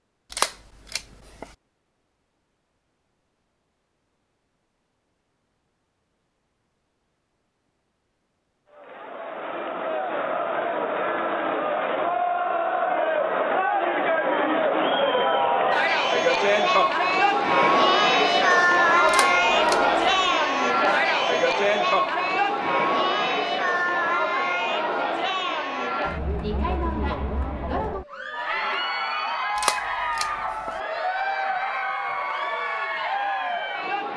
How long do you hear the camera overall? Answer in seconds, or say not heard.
4 s.